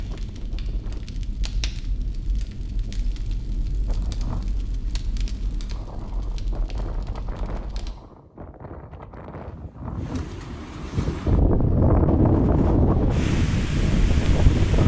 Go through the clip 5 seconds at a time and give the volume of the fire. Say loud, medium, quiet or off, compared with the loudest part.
loud, loud, off.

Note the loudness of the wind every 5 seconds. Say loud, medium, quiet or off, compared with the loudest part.
quiet, quiet, loud.